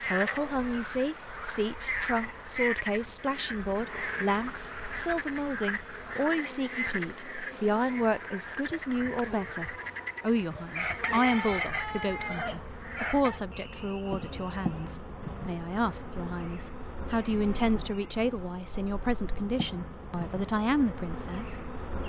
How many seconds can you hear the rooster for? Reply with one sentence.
The rooster can be heard for 3 seconds in total.